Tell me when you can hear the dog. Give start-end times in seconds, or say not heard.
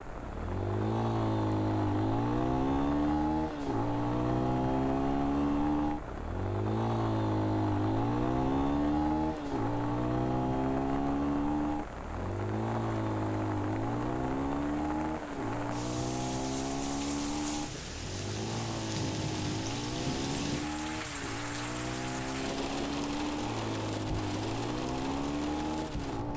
not heard.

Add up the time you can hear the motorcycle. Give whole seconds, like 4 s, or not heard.
26 s.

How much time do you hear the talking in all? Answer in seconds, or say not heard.
not heard.